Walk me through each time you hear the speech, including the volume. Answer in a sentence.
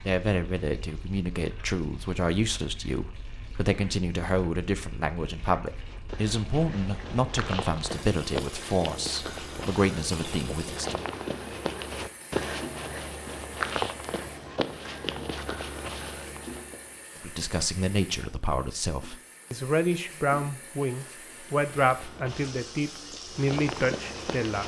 The speech can be heard from 0.0 to 11.1 s, at a steady volume; and from 17.2 to 24.6 s, at a steady volume.